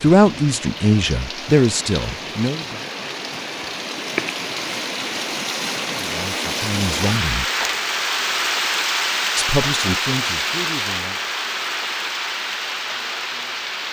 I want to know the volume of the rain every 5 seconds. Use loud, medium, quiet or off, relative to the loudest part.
medium, loud, loud.